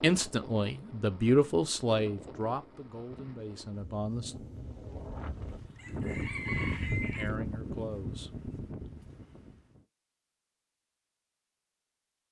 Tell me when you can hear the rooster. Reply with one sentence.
The rooster can be heard from 5.3 to 7.3 s.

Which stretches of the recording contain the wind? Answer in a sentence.
The wind can be heard from 0.0 to 9.8 s.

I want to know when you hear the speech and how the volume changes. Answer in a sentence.
You can hear the speech from 0.0 to 4.3 s, getting louder then quieter; and briefly from 7.0 to 8.3 s.